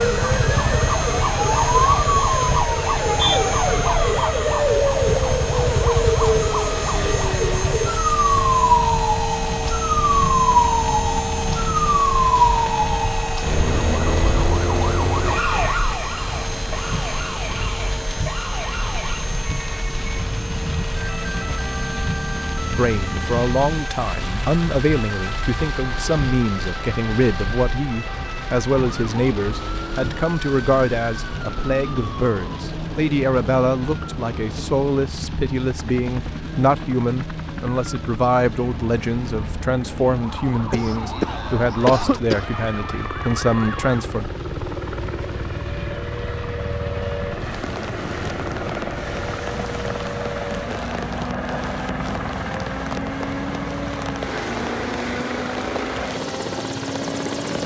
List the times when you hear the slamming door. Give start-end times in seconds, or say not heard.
not heard.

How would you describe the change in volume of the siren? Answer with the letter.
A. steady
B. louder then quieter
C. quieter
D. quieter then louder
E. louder
C.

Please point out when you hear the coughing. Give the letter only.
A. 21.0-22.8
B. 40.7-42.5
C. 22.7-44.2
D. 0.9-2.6
B.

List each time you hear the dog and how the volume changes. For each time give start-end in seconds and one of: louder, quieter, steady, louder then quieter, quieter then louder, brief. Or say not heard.
not heard.